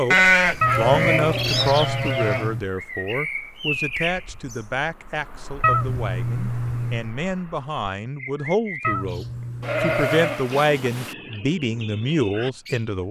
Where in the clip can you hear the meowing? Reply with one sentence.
You can hear the meowing from 0.6 to 2.6 s, from 5.6 to 7.1 s and from 8.8 to 10.2 s.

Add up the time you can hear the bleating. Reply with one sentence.
The bleating can be heard for 4 seconds in total.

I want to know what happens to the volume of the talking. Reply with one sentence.
The volume of the talking goes down, then up.